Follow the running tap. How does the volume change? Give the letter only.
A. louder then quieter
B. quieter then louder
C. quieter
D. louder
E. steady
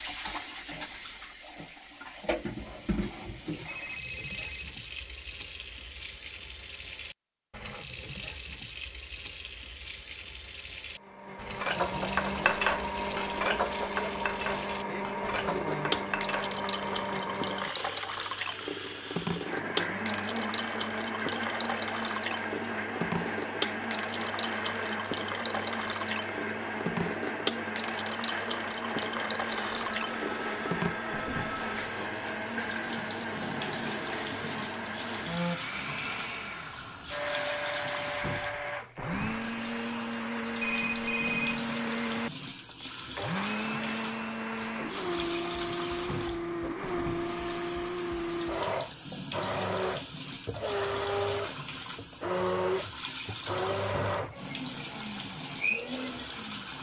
E.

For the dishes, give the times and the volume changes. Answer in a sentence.
You can hear the dishes from 11.6 to 16.6 s, getting quieter.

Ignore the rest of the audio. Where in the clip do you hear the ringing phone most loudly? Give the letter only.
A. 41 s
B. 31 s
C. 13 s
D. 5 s
A.